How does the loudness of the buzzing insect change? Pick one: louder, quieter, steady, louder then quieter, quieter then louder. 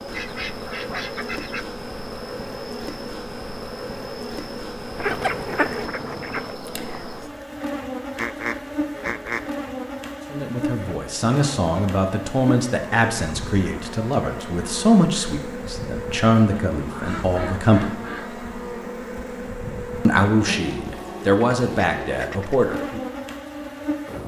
steady.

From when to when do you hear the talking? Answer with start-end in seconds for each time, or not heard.
10.3-17.9, 20.1-23.0.